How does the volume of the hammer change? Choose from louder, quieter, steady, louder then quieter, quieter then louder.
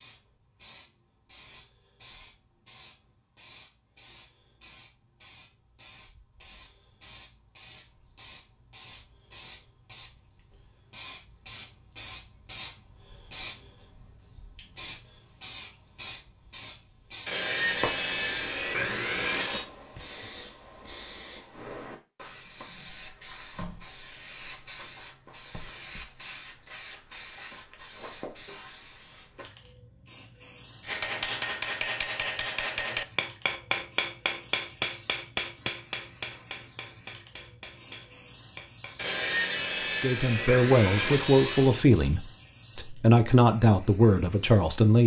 quieter.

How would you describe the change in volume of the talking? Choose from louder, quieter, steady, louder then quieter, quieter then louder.
quieter then louder.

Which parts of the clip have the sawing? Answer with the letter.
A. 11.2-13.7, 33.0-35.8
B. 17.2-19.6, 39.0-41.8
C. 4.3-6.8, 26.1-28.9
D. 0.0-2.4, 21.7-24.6
B.